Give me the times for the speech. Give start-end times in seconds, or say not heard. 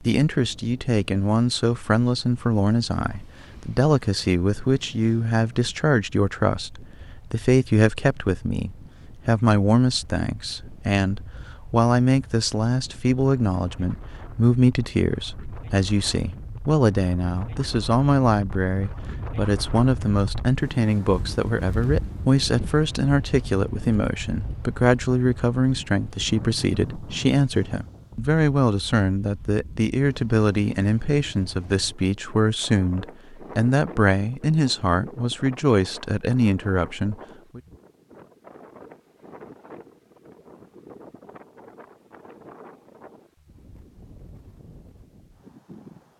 0.0-37.6.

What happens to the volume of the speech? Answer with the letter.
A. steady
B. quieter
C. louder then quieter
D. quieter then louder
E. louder
A.